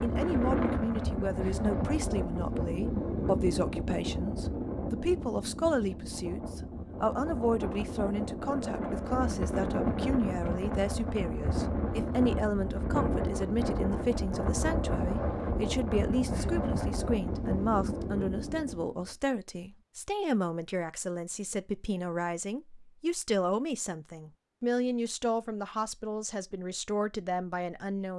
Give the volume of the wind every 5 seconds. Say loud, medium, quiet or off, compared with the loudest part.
loud, loud, loud, loud, off, off.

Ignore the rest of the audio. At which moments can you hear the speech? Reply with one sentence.
The speech can be heard from 0.0 to 28.1 s.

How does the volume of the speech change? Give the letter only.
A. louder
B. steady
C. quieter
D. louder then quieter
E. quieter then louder
B.